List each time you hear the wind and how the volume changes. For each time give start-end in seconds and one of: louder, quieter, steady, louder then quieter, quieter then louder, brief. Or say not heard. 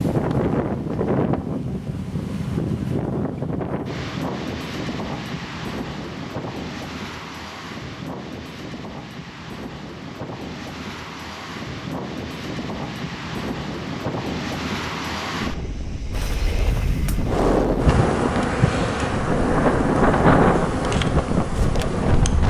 0.0-22.4 quieter then louder.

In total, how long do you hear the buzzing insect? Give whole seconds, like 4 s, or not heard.
6 s.